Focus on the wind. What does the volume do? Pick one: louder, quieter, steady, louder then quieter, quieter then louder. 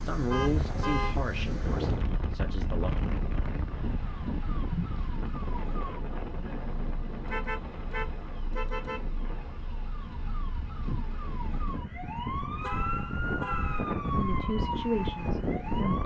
quieter then louder.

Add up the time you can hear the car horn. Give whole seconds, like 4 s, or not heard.
4 s.